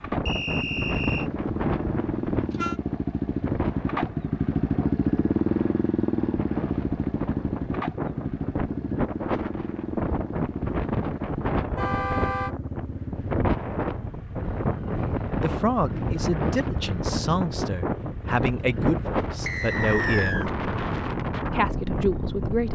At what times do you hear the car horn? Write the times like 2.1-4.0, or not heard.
1.1-2.8, 11.8-12.6.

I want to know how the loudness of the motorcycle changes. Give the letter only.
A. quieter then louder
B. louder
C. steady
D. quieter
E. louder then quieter
D.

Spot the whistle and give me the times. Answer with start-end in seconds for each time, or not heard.
0.2-1.3, 19.4-20.5.